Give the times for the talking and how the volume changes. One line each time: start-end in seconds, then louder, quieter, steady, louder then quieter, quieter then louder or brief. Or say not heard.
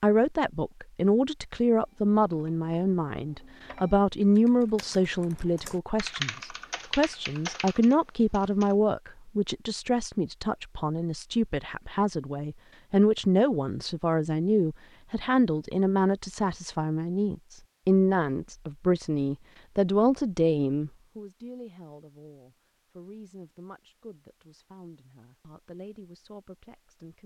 0.0-27.2 quieter.